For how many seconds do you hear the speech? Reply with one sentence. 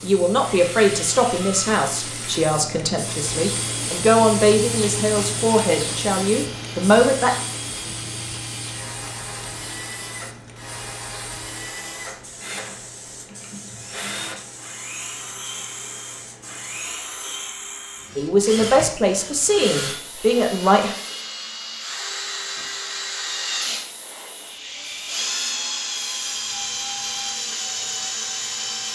You can hear the speech for 10 seconds altogether.